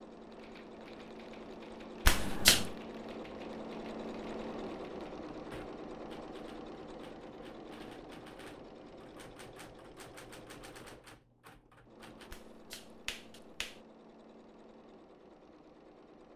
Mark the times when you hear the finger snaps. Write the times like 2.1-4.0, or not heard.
2.0-2.8, 12.3-13.8.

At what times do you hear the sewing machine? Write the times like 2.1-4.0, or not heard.
0.0-16.3.